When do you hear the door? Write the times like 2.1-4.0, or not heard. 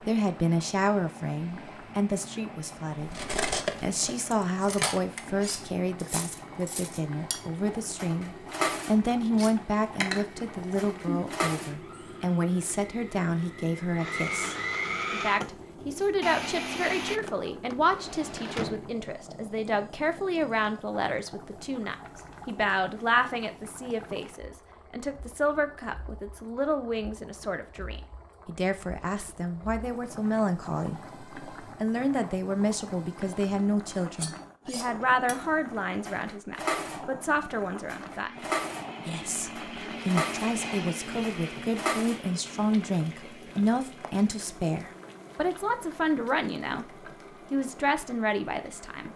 17.1-18.9.